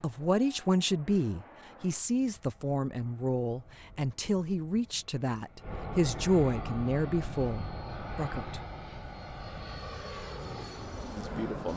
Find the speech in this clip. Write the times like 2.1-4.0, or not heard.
0.0-8.6, 11.2-11.7.